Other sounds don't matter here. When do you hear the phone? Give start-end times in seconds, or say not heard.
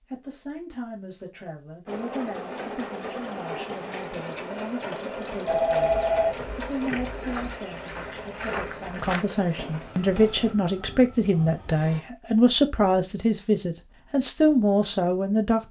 5.5-7.7.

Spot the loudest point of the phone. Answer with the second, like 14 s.
6 s.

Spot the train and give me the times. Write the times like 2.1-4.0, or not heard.
1.9-12.1.